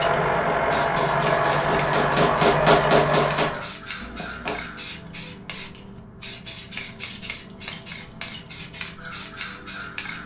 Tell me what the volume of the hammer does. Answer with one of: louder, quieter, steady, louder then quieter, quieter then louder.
louder then quieter.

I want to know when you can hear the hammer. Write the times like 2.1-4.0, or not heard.
0.2-4.7.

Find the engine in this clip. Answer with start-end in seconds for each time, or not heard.
0.0-3.7.